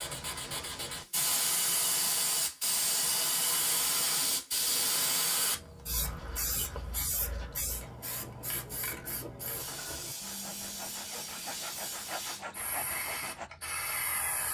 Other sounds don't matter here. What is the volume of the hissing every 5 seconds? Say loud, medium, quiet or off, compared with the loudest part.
loud, medium, medium.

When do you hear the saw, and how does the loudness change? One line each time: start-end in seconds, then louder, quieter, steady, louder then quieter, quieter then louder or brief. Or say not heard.
6.2-13.5 louder.